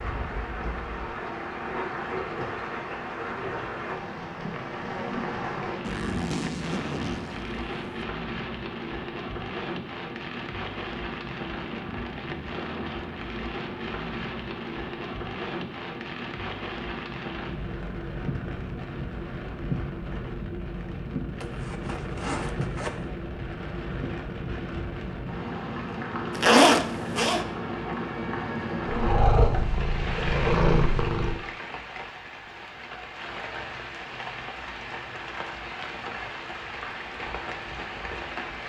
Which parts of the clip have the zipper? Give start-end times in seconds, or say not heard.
5.8-8.1, 21.4-23.1, 26.4-27.4.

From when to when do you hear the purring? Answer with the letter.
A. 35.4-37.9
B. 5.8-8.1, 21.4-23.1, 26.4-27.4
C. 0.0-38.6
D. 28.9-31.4
D.